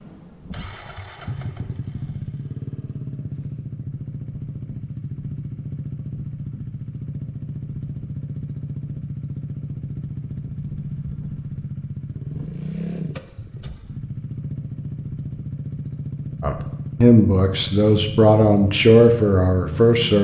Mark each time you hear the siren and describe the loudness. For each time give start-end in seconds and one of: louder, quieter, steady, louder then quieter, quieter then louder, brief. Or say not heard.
not heard.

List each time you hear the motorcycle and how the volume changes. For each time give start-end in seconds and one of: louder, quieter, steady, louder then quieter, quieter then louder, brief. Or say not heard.
0.0-20.1 steady.